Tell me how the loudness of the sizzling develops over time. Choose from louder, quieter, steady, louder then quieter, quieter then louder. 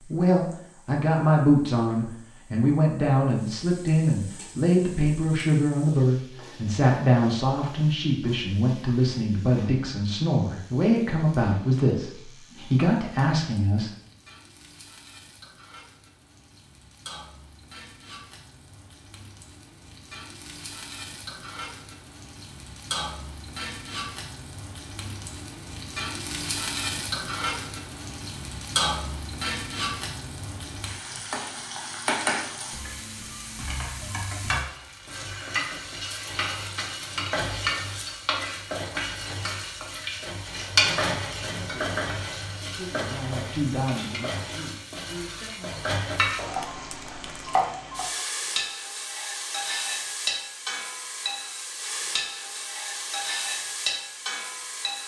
louder.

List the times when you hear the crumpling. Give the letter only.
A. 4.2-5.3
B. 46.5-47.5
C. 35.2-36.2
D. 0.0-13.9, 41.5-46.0
B.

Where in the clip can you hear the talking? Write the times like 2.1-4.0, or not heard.
0.0-13.9, 41.5-46.0.